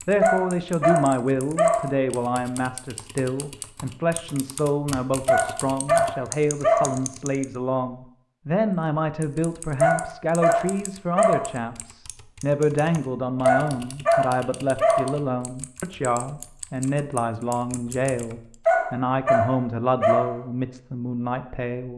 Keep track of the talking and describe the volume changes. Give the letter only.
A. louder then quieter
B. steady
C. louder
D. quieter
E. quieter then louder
B.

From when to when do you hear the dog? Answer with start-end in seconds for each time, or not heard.
0.2-1.9, 5.2-7.0, 9.8-11.5, 13.4-15.2, 18.6-20.4.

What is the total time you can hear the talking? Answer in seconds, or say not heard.
22 s.